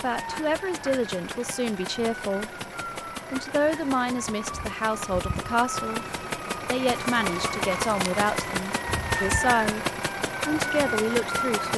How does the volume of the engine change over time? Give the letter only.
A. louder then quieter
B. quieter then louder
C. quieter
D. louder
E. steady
D.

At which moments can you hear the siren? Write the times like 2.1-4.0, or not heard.
0.1-11.7.